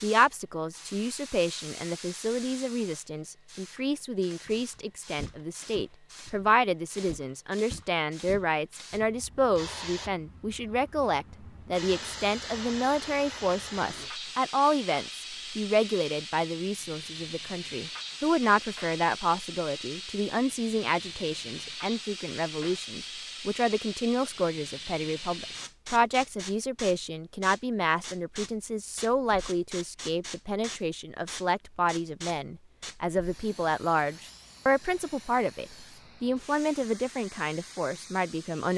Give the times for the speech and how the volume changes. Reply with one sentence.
You can hear the speech from 0.0 to 38.7 s, at a steady volume.